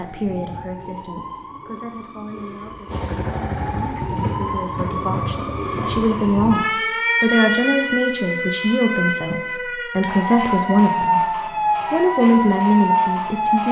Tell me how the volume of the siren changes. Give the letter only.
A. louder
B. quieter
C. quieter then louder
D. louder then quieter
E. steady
A.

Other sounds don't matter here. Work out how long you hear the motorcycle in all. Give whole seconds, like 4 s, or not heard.
3 s.